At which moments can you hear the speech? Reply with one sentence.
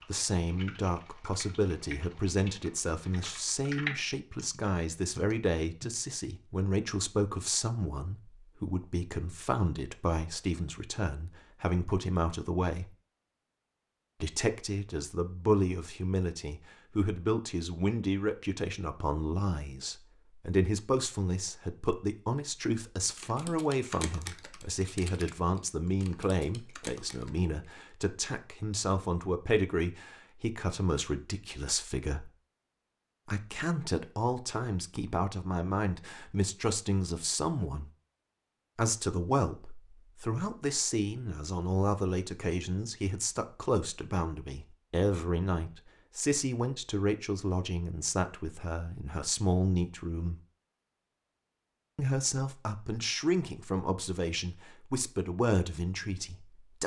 The speech can be heard from 0.1 to 12.9 s, from 14.2 to 32.2 s, from 33.2 to 37.9 s, from 38.8 to 50.4 s and from 52.0 to 56.8 s.